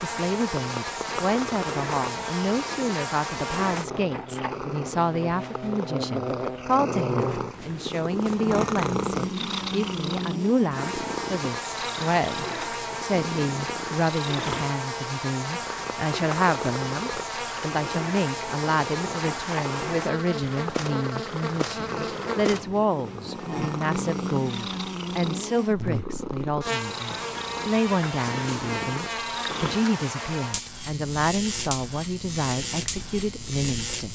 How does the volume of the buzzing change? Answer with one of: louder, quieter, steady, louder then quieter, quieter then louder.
steady.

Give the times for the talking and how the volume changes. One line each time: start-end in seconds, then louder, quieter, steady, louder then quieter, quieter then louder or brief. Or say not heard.
0.0-34.1 steady.